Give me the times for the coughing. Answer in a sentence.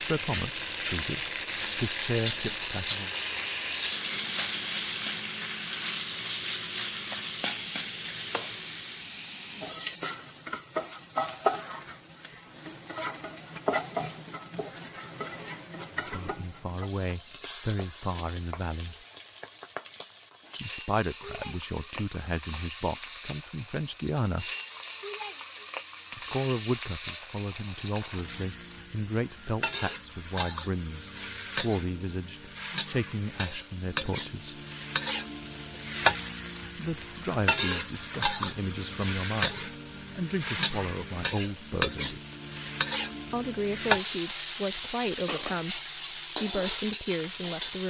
The coughing can't be heard in this clip.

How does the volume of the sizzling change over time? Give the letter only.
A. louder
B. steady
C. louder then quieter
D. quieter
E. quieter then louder
E.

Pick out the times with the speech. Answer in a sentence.
You can hear the speech from 0.0 to 3.1 s, from 15.9 to 18.9 s, from 20.6 to 24.5 s, from 26.1 to 34.6 s, from 36.8 to 42.2 s and from 43.3 to 47.8 s.